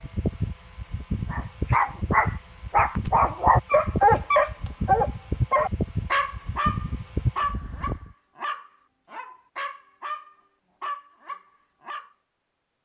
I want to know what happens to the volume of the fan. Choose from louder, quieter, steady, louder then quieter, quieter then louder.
steady.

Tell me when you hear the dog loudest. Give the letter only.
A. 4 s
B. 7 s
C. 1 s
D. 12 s
A.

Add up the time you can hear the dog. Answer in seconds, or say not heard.
11 s.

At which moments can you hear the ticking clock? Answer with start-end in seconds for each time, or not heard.
not heard.